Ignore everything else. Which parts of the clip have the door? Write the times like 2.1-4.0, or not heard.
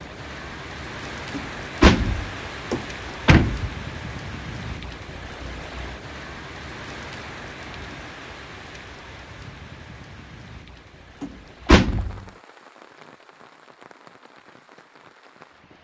1.4-3.7, 11.2-12.2.